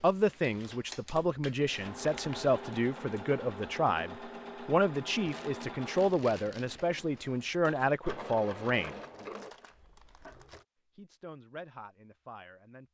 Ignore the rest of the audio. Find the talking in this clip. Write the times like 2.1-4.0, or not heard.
0.0-9.0, 10.9-12.8.